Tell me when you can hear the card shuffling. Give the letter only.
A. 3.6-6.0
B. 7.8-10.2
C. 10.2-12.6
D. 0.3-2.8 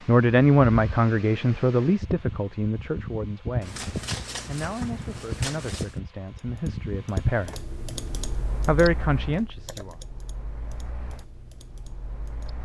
A.